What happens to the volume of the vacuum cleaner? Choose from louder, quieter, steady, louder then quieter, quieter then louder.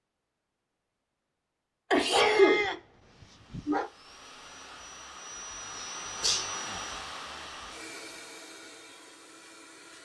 louder then quieter.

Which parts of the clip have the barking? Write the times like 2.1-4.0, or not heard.
1.9-3.9.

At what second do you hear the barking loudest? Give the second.
2 s.